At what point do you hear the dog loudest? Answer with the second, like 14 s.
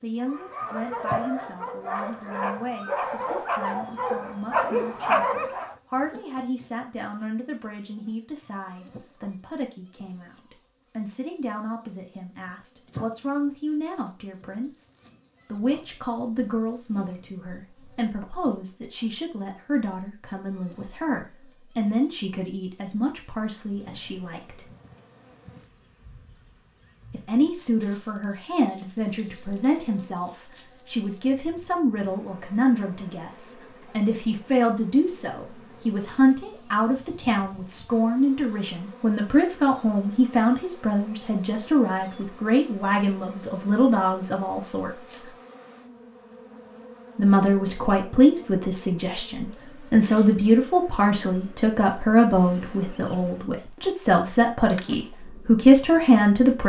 5 s.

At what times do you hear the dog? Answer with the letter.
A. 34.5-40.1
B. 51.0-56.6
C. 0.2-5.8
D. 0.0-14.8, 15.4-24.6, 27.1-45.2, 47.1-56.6
C.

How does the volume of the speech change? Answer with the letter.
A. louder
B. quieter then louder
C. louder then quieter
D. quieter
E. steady
A.